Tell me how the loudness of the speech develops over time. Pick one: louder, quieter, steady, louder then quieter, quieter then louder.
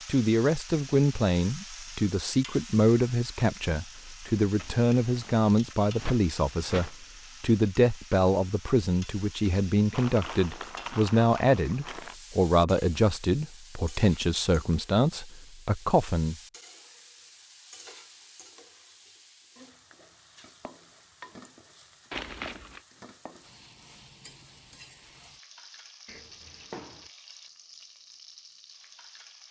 steady.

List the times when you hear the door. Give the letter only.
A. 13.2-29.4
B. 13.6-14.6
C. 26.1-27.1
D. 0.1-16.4
C.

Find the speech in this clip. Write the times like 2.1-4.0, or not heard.
0.1-16.4.